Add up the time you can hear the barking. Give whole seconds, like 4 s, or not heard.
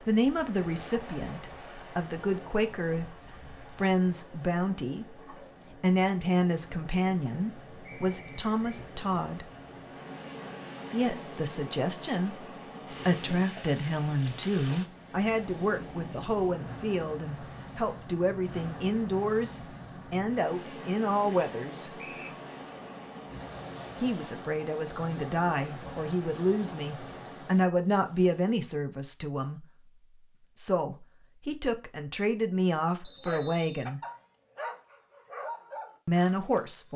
4 s.